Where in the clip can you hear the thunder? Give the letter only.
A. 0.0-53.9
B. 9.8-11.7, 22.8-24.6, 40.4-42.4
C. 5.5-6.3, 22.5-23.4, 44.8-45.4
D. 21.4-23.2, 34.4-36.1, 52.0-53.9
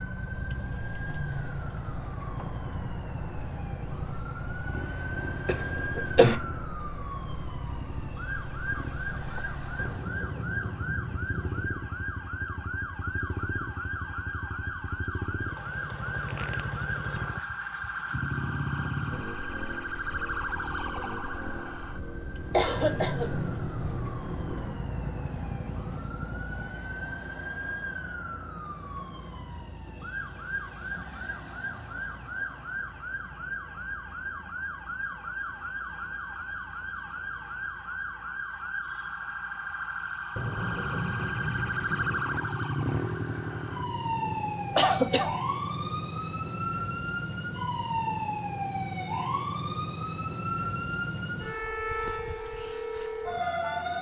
B.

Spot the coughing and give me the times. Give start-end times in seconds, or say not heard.
5.5-6.3, 22.5-23.4, 44.8-45.4.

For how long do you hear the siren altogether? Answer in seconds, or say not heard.
54 s.